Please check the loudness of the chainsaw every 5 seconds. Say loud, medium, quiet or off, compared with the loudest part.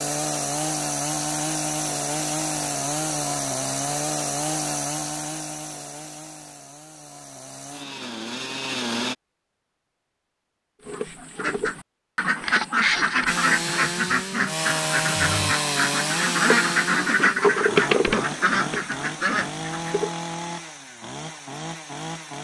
loud, medium, loud, loud, medium.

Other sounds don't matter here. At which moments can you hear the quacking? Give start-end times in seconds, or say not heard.
10.8-20.1.